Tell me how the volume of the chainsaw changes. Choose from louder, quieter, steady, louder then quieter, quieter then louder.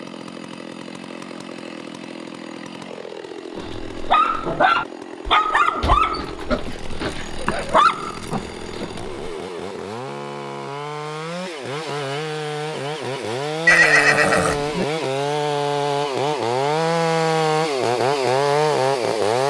louder.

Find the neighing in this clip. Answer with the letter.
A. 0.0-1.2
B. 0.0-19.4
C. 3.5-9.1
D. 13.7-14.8
D.